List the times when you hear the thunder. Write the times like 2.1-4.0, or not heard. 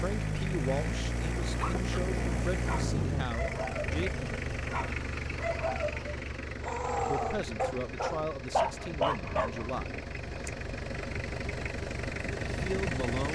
1.2-3.2.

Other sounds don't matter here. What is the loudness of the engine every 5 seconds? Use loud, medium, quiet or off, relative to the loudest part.
loud, medium, loud.